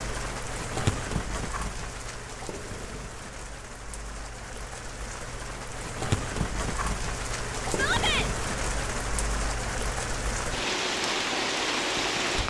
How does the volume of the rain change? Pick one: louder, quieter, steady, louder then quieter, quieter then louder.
quieter then louder.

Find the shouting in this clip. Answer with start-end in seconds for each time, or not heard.
7.7-8.3.